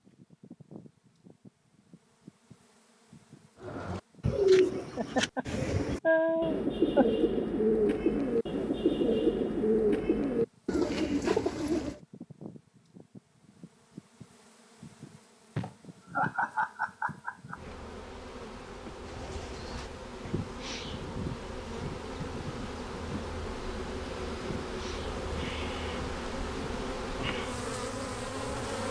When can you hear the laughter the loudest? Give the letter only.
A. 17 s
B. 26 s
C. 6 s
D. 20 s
C.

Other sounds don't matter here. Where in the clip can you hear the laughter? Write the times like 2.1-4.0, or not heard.
5.0-7.0, 15.6-17.6.